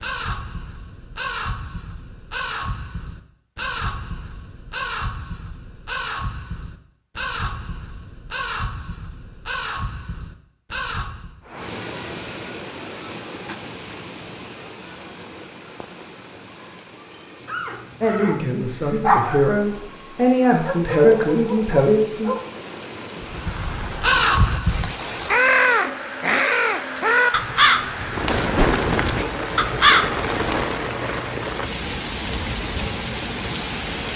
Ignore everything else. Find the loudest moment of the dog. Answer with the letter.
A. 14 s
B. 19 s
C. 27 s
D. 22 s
B.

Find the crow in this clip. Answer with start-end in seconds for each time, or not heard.
0.0-11.4, 23.2-30.9.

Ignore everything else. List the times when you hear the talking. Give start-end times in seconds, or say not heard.
18.0-22.3.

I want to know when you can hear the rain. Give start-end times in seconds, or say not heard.
11.4-34.1.